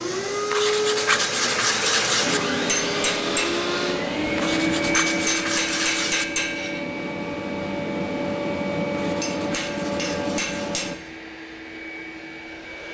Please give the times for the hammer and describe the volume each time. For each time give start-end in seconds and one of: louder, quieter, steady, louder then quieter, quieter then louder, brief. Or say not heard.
2.2-10.9 steady.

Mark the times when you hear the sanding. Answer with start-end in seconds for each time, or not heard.
0.5-2.4, 4.3-6.2, 8.9-10.8.